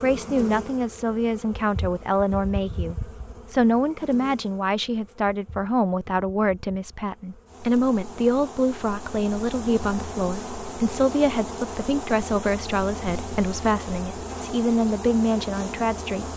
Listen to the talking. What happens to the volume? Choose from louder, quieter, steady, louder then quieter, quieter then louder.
steady.